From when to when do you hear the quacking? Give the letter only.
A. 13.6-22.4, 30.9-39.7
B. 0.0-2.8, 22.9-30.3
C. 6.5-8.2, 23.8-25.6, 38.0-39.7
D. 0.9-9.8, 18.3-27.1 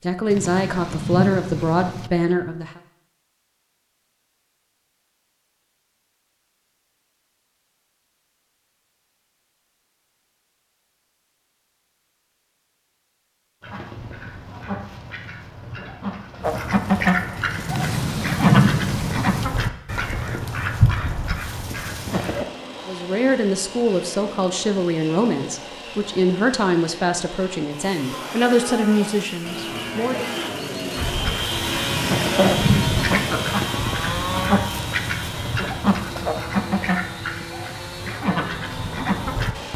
A.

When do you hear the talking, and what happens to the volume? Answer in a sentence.
You can hear the talking briefly from 0.0 to 2.8 s; and from 22.9 to 30.3 s, at a steady volume.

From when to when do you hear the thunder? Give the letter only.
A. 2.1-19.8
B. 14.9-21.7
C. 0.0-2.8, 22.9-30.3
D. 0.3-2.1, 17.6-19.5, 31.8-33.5
D.